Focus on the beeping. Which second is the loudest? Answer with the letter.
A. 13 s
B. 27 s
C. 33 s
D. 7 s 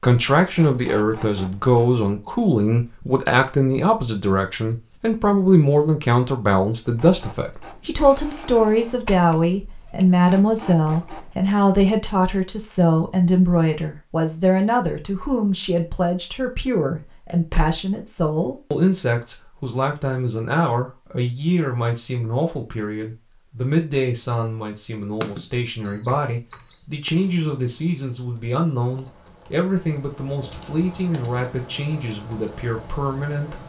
B.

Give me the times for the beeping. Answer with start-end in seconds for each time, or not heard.
25.2-27.1.